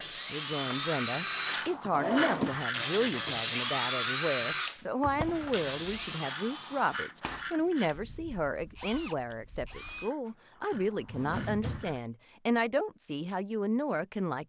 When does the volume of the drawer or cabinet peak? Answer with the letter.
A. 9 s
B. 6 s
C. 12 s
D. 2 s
D.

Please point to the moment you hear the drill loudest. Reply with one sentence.
The loudest moment of the drill is at 4 seconds.